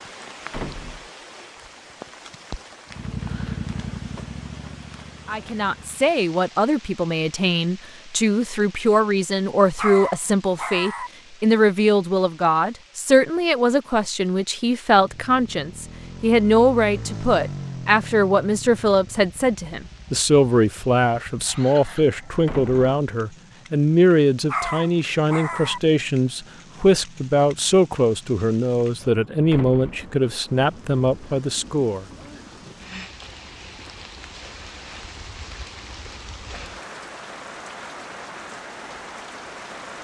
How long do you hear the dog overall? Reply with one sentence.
The dog can be heard for 3 seconds in total.